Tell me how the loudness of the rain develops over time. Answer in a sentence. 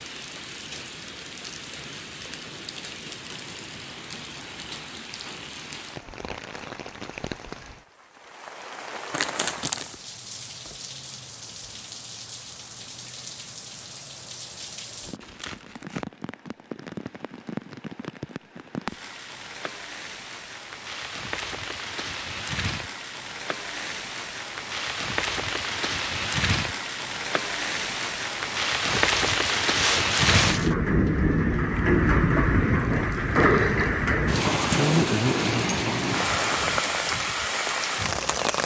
The volume of the rain goes up.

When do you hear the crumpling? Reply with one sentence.
You can hear the crumpling from 9.1 to 9.8 s, from 15.2 to 16.1 s and from 28.9 to 30.8 s.